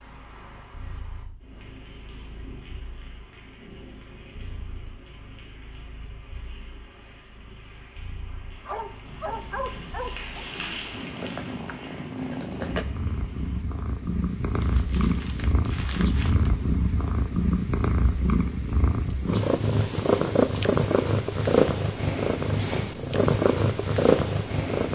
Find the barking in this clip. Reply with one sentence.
You can hear the barking from 8.7 to 10.4 s.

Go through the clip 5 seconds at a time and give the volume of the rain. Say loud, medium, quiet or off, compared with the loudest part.
medium, medium, loud, off, off.